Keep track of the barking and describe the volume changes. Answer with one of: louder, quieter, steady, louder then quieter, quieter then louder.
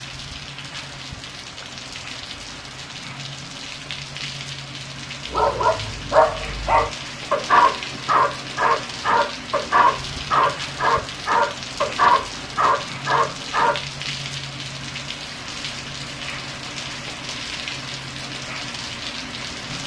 steady.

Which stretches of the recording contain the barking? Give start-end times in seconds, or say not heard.
5.3-13.8.